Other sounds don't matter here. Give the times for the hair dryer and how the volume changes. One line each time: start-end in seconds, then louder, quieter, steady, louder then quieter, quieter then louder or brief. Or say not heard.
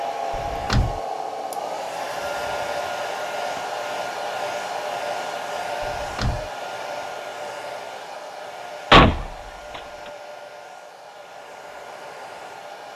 0.0-12.9 quieter.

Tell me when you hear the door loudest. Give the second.
9 s.